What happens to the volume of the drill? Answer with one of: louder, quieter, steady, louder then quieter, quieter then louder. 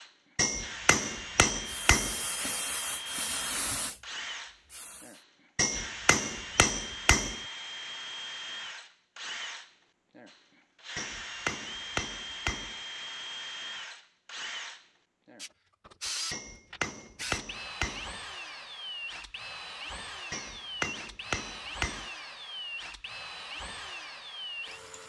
steady.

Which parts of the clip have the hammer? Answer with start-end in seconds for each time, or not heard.
0.3-2.2, 5.5-7.4, 10.9-12.8, 16.3-18.1, 20.3-22.1.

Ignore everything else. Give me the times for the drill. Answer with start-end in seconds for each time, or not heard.
0.0-25.0.